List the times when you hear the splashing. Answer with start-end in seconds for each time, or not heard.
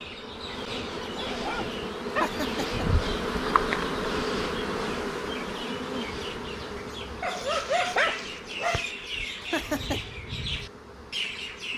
not heard.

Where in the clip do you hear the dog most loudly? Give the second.
8 s.